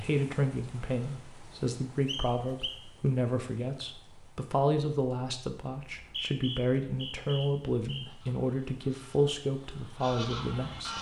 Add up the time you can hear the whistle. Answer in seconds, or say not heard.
3 s.